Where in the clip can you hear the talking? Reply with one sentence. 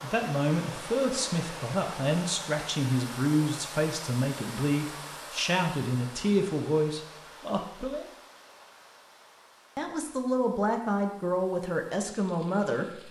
The talking can be heard from 0.0 to 8.1 s and from 9.8 to 13.0 s.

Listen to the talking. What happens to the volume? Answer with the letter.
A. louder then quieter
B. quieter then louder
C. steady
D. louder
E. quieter
C.